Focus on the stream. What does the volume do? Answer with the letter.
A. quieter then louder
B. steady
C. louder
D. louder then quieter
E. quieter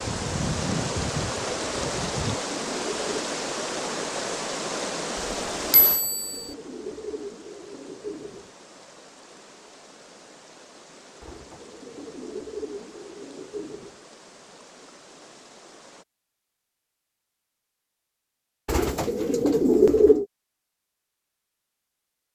E.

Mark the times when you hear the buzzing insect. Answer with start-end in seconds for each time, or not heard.
0.0-2.4.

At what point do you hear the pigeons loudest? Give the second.
20 s.